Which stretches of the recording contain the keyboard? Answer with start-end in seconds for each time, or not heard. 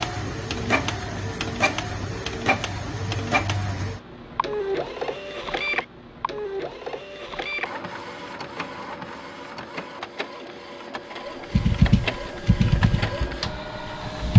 11.5-14.3.